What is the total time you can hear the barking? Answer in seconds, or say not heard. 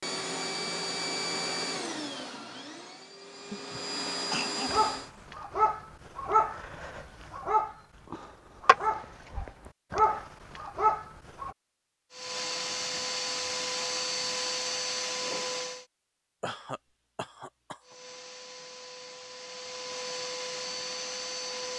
7 s.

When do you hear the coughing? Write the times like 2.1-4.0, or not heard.
3.5-5.2, 16.4-17.9.